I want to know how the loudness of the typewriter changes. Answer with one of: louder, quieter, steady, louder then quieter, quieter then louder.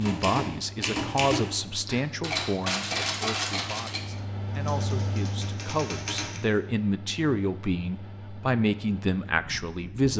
quieter.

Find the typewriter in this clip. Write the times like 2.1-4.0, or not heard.
0.0-6.4.